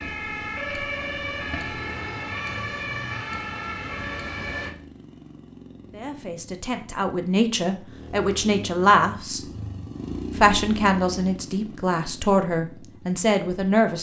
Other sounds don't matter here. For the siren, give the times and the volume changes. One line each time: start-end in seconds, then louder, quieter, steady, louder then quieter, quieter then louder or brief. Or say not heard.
0.0-4.7 steady.